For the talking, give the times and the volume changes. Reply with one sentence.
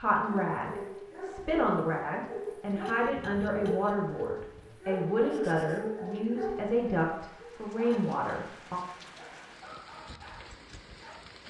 You can hear the talking from 0.0 to 8.8 s, at a steady volume.